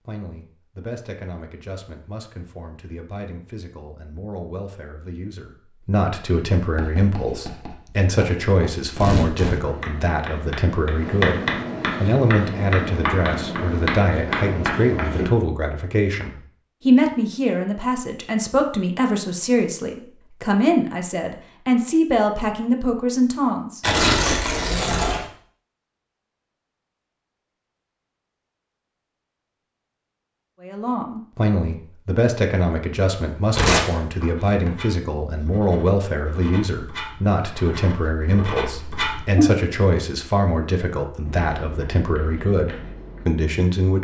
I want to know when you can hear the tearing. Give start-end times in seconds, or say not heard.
8.9-9.6, 23.8-25.2, 33.5-34.7.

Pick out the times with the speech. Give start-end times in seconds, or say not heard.
0.1-23.8, 30.6-43.9.